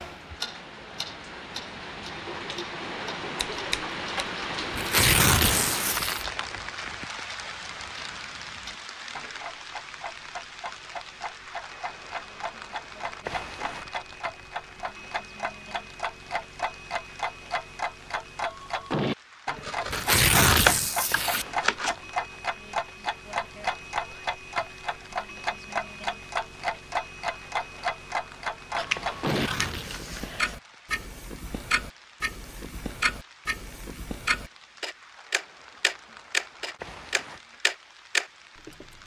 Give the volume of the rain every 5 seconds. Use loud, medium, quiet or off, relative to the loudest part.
loud, loud, medium, quiet, quiet, quiet, quiet, quiet.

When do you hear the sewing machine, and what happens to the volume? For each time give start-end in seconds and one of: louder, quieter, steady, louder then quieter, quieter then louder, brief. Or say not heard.
not heard.